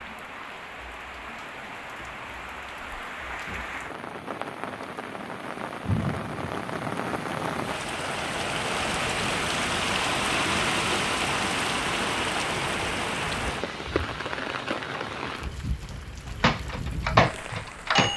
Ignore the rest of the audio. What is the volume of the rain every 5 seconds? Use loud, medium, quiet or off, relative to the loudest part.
medium, loud, loud, medium.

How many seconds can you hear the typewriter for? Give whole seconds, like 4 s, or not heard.
2 s.